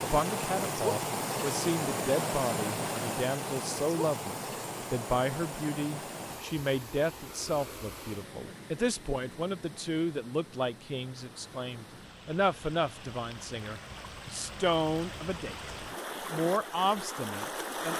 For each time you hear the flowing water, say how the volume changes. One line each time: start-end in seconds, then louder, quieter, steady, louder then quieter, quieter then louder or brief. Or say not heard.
0.0-17.9 quieter then louder.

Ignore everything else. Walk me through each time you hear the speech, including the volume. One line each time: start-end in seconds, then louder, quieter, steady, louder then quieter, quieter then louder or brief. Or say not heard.
0.0-17.9 steady.